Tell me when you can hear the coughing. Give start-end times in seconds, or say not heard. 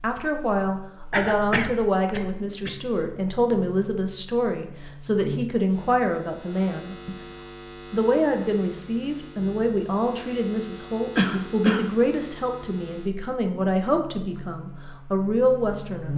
1.1-2.8, 11.2-11.9.